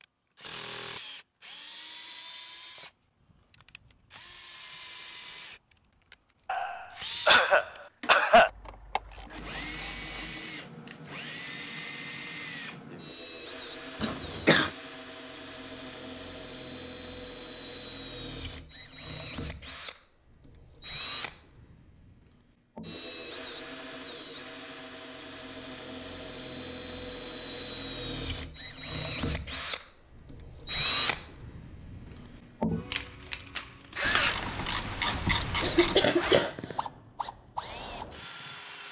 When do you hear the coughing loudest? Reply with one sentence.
The loudest moment of the coughing is at 8 seconds.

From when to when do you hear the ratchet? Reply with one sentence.
You can hear the ratchet from 8.4 to 10.4 s and from 34.0 to 36.0 s.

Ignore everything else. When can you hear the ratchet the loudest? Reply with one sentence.
The loudest moment of the ratchet is at 35 seconds.